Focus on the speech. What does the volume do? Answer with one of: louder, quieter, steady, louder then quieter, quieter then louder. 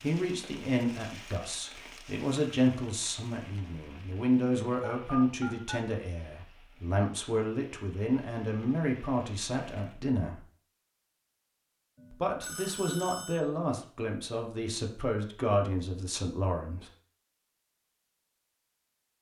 steady.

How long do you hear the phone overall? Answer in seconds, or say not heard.
2 s.